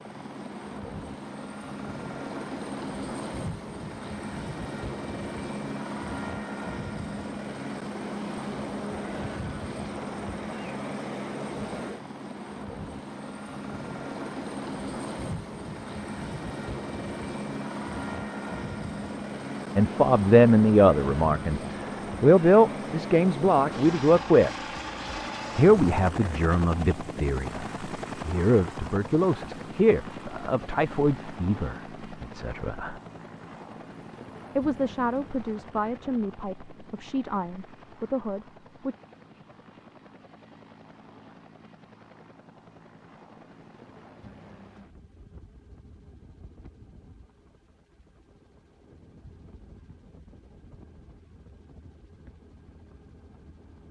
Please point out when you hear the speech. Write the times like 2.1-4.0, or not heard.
19.8-21.6, 22.2-24.5, 25.6-33.0, 34.5-39.0.